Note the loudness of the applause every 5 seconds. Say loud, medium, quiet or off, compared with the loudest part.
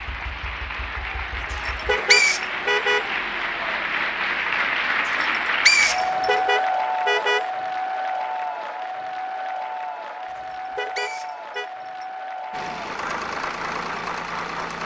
loud, loud, medium.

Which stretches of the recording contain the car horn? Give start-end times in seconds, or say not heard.
1.9-3.0, 6.2-7.5, 10.7-11.7.